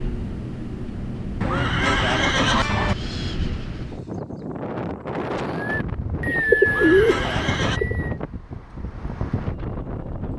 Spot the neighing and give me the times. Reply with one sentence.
You can hear the neighing from 1.4 to 3.0 s and from 6.7 to 7.8 s.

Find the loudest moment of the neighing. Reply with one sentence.
The volume of the neighing peaks at 2 seconds.